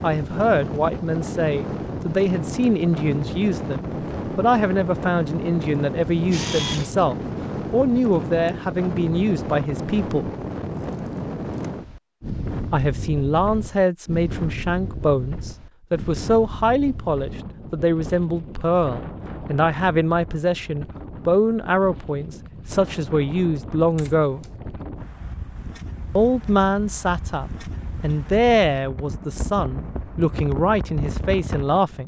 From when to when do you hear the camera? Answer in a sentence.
The camera can be heard from 6.3 to 6.9 s, from 10.8 to 11.7 s and from 23.9 to 24.5 s.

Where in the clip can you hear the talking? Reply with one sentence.
You can hear the talking from 0.0 to 10.3 s, from 12.7 to 24.4 s and from 26.1 to 32.0 s.